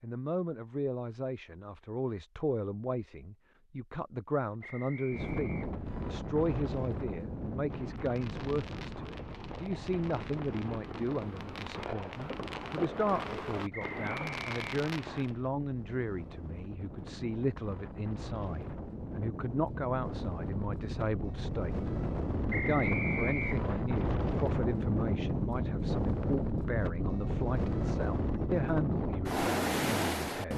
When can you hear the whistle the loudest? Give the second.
23 s.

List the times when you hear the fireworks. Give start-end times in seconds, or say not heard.
7.7-15.4.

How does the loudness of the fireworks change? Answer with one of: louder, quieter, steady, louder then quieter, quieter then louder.
louder.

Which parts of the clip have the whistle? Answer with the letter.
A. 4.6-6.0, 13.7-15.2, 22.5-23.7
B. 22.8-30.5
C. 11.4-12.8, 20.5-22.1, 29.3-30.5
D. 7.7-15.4
A.